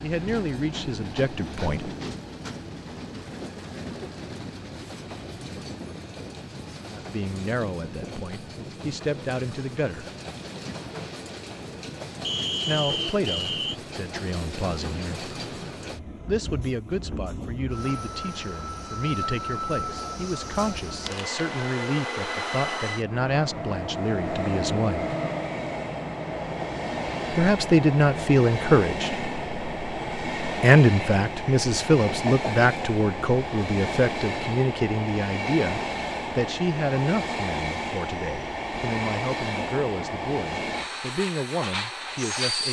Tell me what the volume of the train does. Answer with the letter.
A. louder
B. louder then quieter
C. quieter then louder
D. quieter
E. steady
A.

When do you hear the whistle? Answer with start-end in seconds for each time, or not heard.
12.2-13.8.